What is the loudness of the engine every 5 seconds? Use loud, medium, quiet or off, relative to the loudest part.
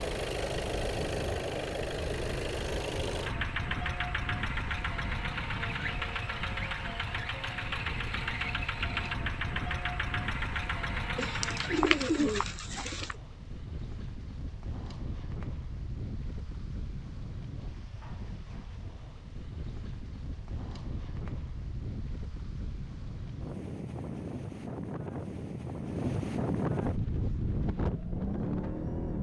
loud, loud, loud, off, off, loud.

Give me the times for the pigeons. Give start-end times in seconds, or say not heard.
11.2-13.2.